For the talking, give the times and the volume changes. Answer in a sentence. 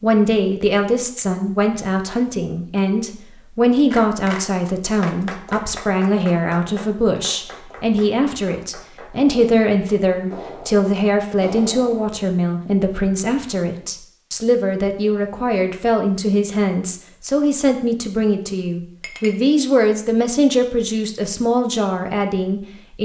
You can hear the talking from 0.0 to 23.0 s, at a steady volume.